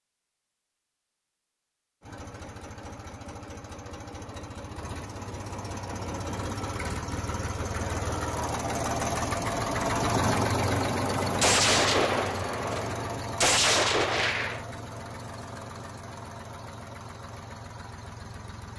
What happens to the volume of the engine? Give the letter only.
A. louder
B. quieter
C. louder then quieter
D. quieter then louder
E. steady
C.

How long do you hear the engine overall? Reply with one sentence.
The engine can be heard for 17 seconds in total.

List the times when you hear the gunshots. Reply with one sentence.
The gunshots can be heard from 11.4 to 14.7 s.